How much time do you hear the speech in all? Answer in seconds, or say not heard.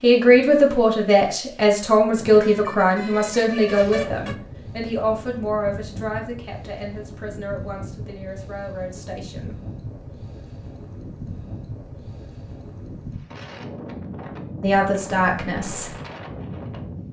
11 s.